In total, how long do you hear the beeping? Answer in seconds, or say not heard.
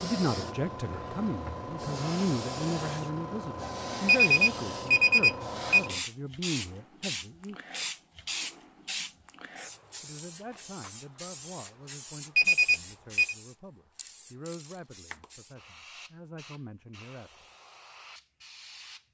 3 s.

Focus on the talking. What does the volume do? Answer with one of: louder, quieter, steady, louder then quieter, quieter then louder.
quieter.